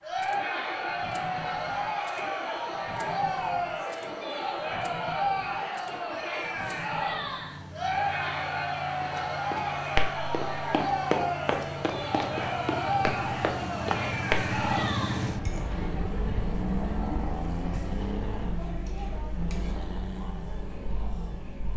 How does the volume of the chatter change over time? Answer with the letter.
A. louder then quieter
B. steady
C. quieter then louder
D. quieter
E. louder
D.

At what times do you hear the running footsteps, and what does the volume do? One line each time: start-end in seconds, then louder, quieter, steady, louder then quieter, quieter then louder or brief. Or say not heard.
9.0-14.6 steady.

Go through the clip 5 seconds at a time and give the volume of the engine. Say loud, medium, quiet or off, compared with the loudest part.
medium, medium, loud, loud, medium.